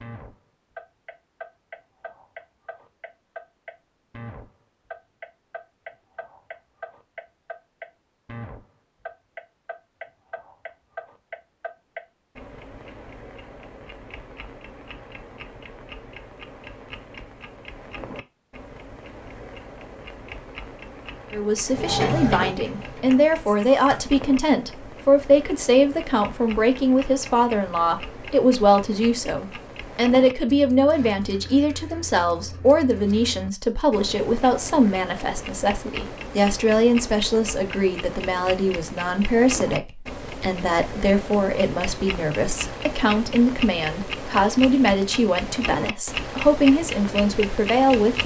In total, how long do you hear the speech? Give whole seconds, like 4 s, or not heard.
27 s.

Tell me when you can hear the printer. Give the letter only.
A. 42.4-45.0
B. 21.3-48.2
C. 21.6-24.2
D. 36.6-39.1
C.